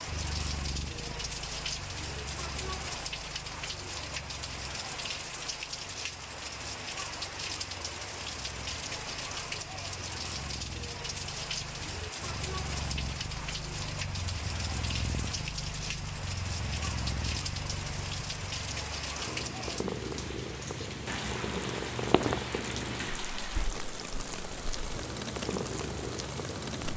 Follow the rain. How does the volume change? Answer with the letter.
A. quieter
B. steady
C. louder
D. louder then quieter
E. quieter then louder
B.